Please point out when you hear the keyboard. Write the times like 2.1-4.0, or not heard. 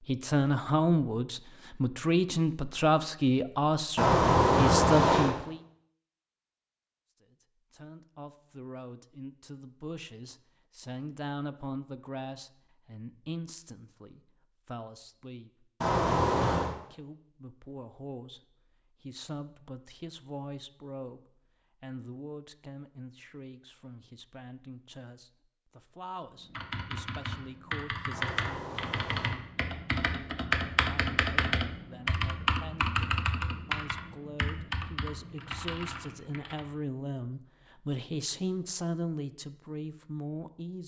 26.4-36.6.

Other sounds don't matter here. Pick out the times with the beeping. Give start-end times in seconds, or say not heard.
4.0-5.3, 15.8-16.8, 28.1-29.4.